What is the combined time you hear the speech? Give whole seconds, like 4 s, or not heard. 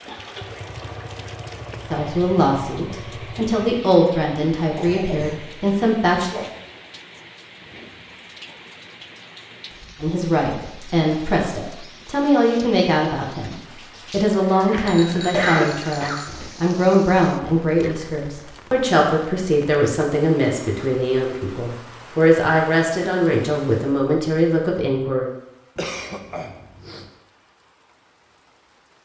20 s.